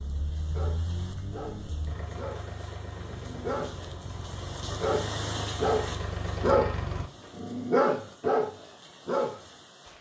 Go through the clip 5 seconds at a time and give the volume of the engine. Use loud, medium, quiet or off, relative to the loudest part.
medium, loud.